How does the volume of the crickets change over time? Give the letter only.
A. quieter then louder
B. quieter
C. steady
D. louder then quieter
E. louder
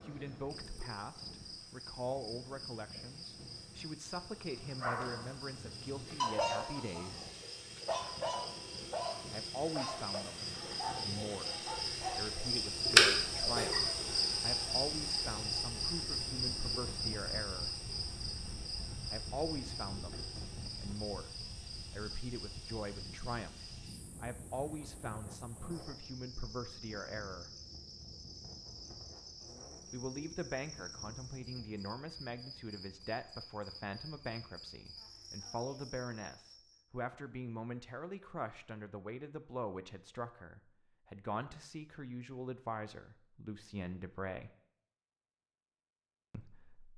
D.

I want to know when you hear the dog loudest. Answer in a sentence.
The volume of the dog peaks at 6 seconds.